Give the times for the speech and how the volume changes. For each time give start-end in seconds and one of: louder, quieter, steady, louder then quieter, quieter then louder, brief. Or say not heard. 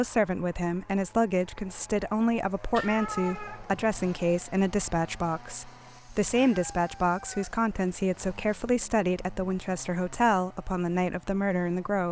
0.0-12.0 steady.